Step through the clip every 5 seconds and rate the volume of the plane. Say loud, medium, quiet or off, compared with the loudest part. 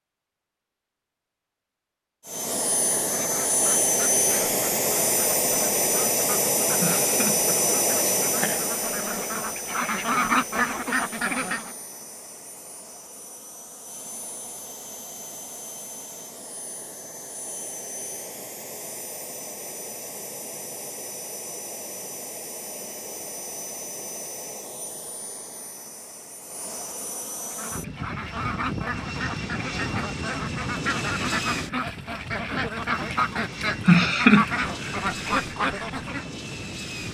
loud, loud, quiet, quiet, quiet, medium, medium, medium.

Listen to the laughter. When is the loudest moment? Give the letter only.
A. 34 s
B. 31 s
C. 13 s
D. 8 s
A.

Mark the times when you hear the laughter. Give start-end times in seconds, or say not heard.
6.8-8.6, 33.9-34.5.